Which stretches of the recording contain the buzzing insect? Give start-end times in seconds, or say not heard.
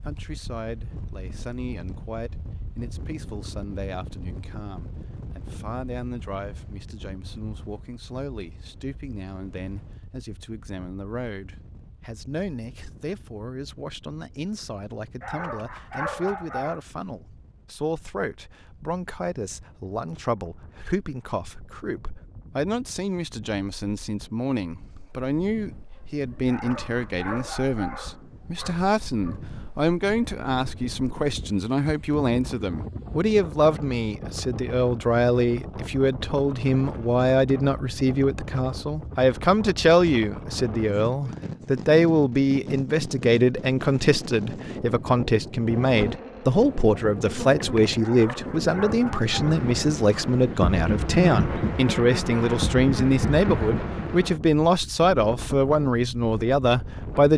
45.8-54.4.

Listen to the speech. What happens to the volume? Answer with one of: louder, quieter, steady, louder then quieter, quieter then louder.
louder.